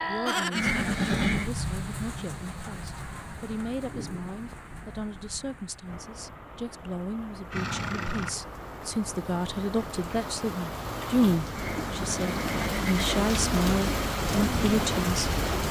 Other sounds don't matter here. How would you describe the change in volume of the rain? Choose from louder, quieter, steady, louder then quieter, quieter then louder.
quieter then louder.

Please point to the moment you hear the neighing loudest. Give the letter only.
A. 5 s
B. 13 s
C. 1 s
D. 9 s
C.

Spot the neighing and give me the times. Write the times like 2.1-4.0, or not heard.
0.5-1.5, 7.5-8.4, 11.5-13.2.